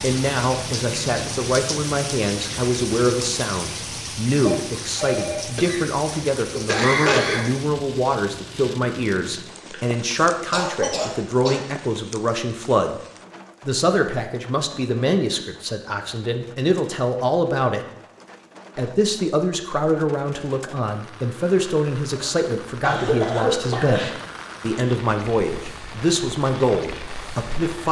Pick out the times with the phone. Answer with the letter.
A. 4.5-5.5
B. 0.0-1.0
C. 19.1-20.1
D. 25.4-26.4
A.